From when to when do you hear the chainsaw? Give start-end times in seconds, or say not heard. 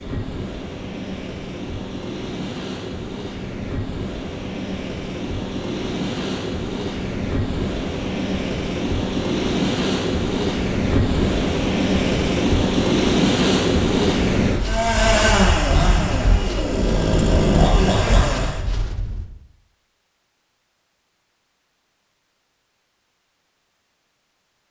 14.6-18.6.